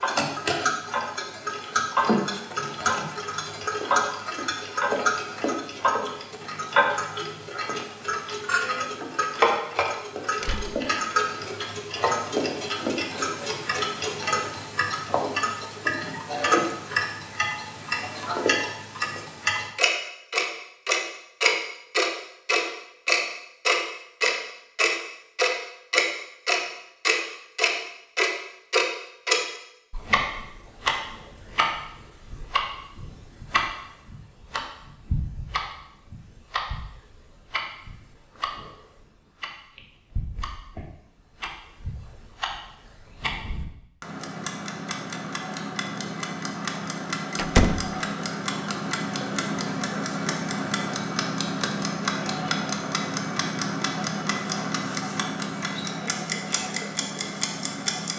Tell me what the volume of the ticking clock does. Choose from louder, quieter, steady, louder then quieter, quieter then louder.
quieter then louder.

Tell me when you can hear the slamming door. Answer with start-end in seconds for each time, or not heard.
10.4-10.8, 47.4-48.0.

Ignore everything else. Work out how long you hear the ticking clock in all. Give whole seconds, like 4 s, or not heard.
58 s.